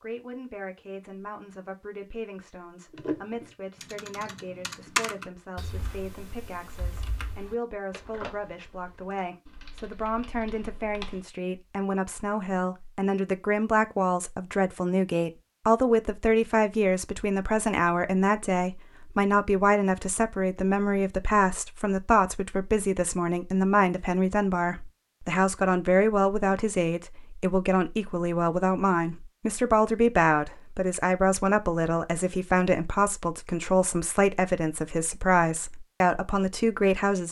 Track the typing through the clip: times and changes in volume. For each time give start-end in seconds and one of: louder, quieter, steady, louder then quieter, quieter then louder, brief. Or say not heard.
2.9-11.2 louder then quieter.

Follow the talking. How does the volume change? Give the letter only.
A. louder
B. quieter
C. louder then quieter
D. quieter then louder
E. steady
A.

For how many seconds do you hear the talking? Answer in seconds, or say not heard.
37 s.